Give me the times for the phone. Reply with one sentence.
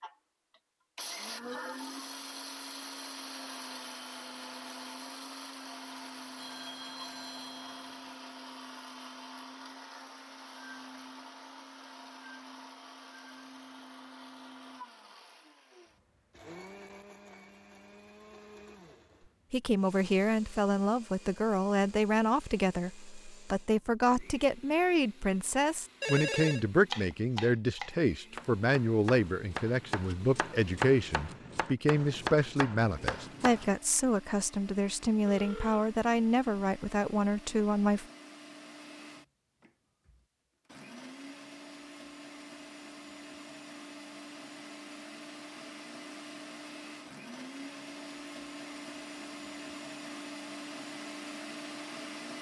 The phone can be heard from 6.3 to 8.2 s, from 26.0 to 26.6 s and from 35.2 to 35.9 s.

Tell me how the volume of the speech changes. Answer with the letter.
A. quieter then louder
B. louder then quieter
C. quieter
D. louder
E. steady
E.